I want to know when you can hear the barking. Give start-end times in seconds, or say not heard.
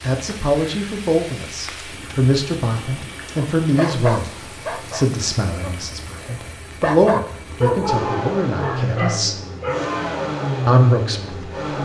3.4-9.9.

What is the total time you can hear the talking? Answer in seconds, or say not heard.
10 s.